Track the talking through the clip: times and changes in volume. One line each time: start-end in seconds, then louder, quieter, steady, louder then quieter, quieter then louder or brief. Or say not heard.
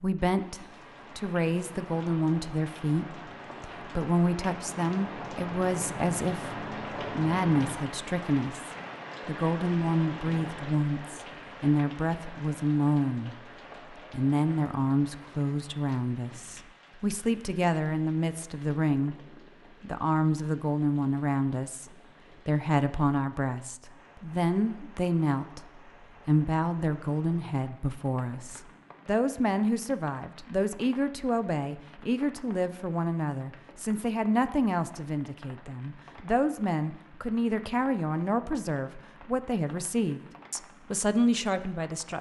0.0-19.1 steady
19.8-42.1 steady.